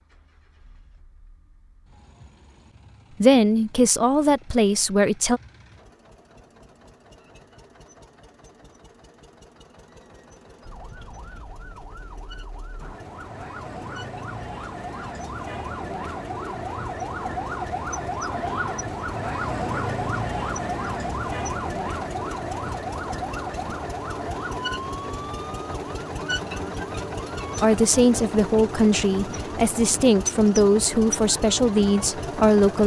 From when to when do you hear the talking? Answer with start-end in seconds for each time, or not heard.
3.2-5.4, 27.6-32.8.